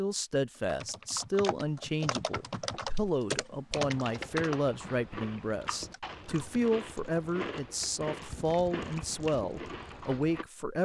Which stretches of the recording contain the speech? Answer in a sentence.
You can hear the speech from 0.0 to 10.7 s.